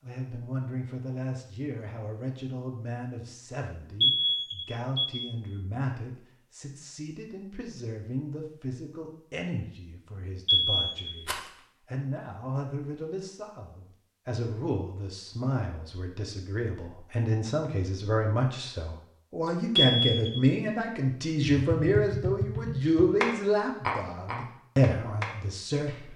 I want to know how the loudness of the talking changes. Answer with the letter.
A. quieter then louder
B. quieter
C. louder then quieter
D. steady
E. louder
E.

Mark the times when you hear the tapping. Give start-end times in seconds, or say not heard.
21.7-26.1.